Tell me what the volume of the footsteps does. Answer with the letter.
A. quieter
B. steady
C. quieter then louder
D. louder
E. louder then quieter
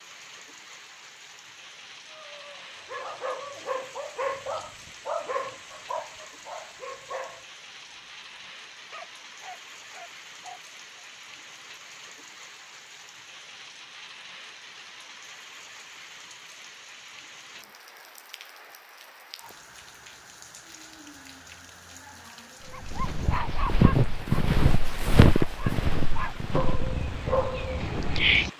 A.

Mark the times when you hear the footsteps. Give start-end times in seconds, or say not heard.
22.6-28.2.